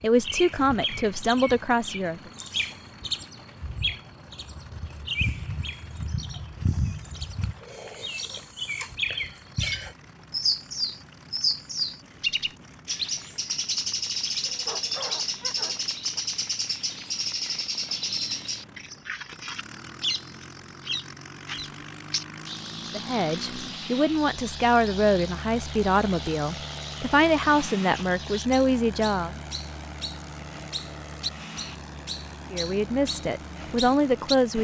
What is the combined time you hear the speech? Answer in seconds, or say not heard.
11 s.